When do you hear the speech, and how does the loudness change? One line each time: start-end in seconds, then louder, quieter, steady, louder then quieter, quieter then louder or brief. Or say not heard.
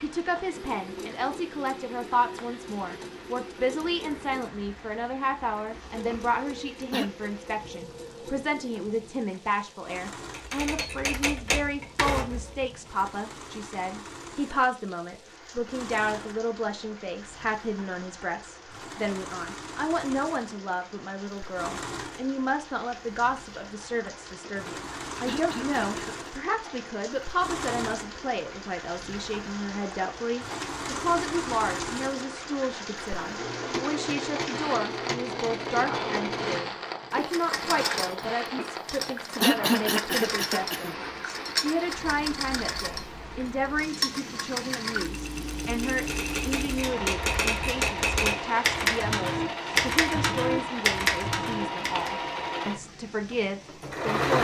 0.0-54.3 steady.